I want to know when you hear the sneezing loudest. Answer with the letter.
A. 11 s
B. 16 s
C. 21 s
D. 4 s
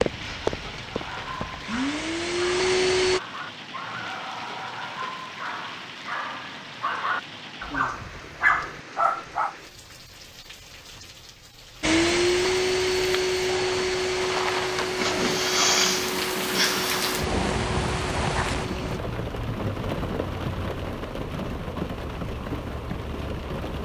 B.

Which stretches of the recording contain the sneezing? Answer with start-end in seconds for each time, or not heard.
14.9-17.1.